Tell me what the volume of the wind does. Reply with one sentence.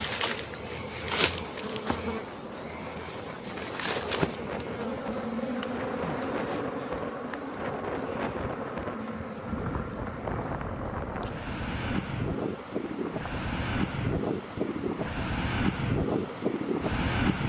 The volume of the wind goes up.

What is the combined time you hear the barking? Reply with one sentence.
You can't hear the barking here.